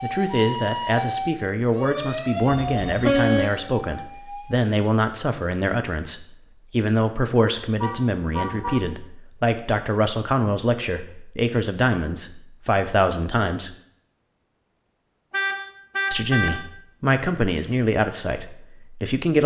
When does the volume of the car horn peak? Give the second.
3 s.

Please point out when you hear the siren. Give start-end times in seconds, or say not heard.
0.0-4.5.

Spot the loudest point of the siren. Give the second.
1 s.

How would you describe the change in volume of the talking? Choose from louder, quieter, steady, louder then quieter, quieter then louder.
steady.